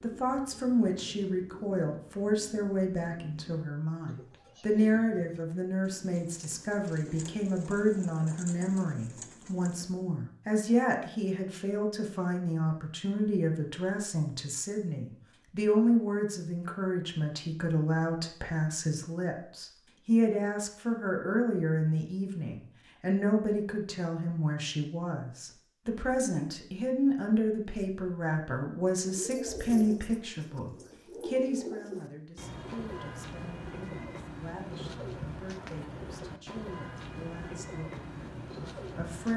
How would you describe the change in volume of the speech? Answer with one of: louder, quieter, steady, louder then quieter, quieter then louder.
quieter.